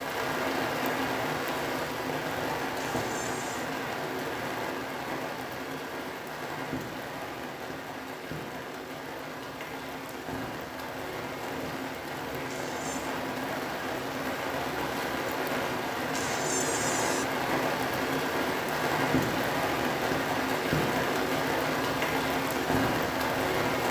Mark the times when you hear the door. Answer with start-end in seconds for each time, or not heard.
3.0-3.7, 12.4-13.2, 16.1-17.2.